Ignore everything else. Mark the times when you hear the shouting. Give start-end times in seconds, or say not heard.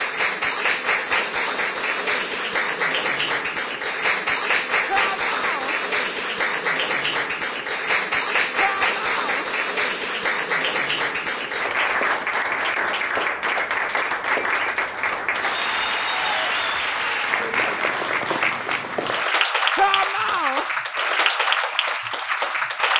4.8-5.8, 8.6-9.4, 19.8-20.6.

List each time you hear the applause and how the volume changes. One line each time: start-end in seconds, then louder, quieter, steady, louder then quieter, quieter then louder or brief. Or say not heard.
0.0-22.9 steady.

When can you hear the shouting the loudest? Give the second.
20 s.